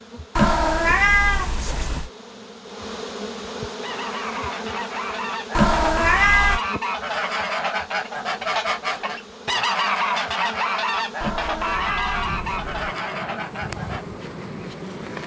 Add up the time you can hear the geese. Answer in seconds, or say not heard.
10 s.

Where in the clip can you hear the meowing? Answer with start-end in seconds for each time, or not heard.
0.3-2.1, 5.5-6.6, 11.2-12.9.